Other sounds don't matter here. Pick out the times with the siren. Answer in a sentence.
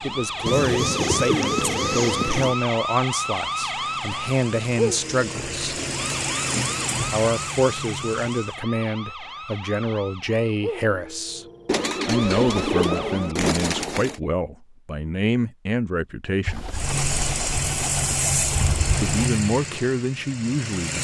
The siren can be heard from 0.0 to 13.4 s.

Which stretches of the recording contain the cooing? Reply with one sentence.
The cooing can be heard from 0.5 to 2.5 s, from 5.3 to 7.2 s, from 11.7 to 14.2 s and from 16.4 to 19.3 s.